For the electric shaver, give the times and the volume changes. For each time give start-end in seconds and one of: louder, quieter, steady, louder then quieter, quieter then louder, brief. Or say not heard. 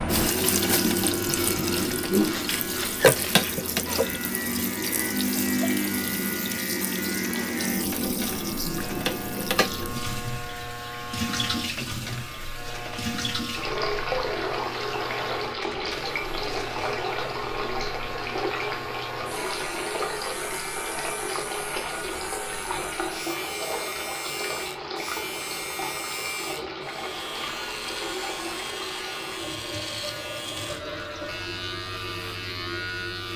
0.0-33.3 steady.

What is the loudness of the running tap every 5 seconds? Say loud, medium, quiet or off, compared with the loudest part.
loud, loud, medium, medium, medium, medium, quiet.